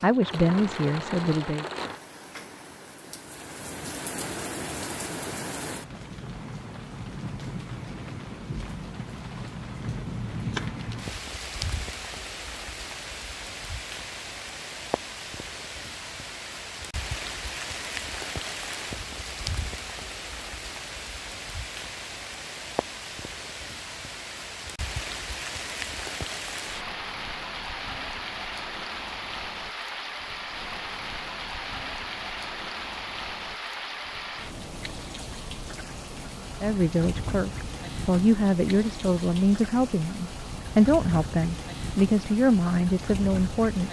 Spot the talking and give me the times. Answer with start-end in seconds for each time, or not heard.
0.0-1.6, 36.6-43.8.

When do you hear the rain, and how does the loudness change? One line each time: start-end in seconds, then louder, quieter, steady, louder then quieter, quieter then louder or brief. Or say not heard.
0.0-43.8 steady.